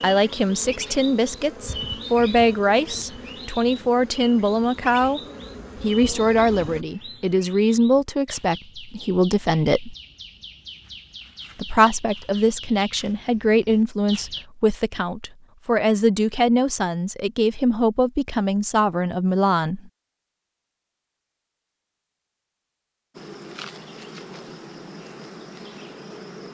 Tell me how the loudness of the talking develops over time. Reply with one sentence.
The volume of the talking stays about the same.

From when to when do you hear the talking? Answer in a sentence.
The talking can be heard from 0.0 to 5.2 s, from 5.8 to 9.9 s and from 11.6 to 19.9 s.